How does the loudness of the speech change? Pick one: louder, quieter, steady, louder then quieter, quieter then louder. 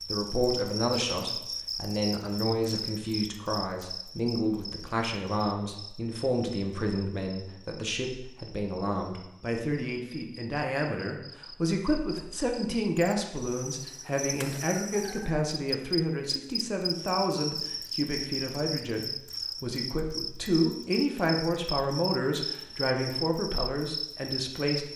steady.